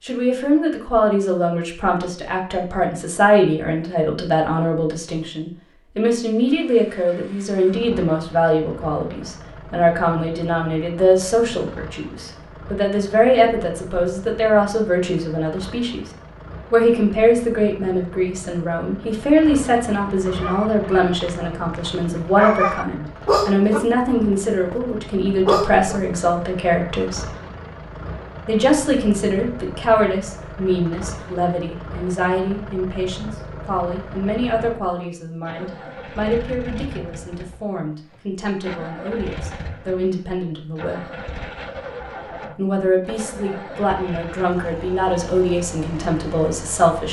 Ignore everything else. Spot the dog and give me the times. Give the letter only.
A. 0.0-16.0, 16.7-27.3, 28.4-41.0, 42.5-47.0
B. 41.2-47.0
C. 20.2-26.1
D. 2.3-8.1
C.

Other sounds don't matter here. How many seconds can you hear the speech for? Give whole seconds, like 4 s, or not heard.
44 s.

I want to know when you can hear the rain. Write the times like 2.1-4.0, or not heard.
not heard.